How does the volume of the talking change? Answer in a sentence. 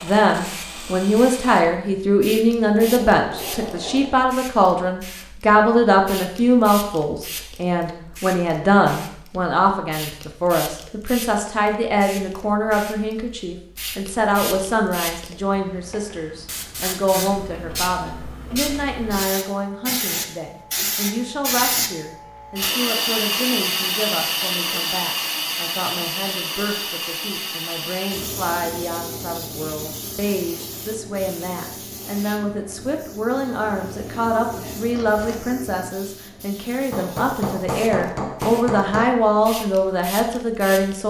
The volume of the talking goes down, then up.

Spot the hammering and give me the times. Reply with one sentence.
You can hear the hammering from 2.6 to 4.2 s and from 36.9 to 39.1 s.